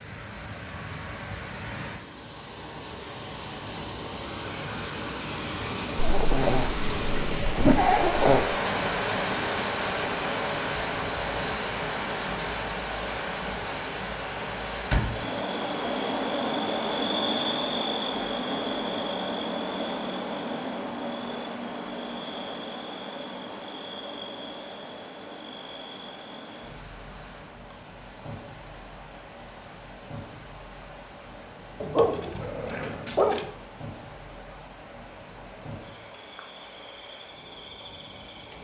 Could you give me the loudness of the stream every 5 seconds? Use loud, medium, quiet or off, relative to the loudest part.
medium, loud, loud, medium, quiet, quiet, quiet, quiet.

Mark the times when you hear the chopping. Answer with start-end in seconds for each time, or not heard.
not heard.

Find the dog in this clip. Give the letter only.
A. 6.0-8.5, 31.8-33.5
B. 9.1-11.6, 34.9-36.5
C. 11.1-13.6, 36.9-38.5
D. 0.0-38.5
A.